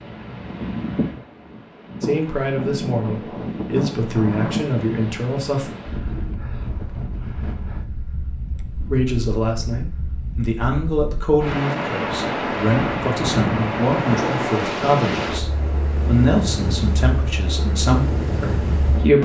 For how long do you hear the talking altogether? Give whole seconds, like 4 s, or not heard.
14 s.